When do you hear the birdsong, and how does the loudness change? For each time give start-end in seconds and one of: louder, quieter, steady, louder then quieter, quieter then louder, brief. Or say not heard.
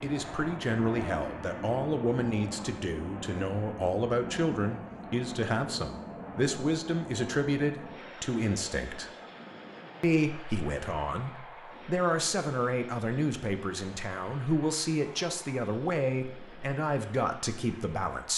not heard.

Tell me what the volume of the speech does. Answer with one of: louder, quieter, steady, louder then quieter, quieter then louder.
steady.